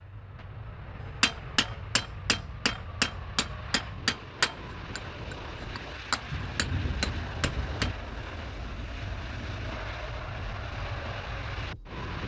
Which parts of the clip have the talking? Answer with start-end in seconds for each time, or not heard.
not heard.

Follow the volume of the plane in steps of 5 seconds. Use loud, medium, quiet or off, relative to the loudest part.
medium, loud, loud.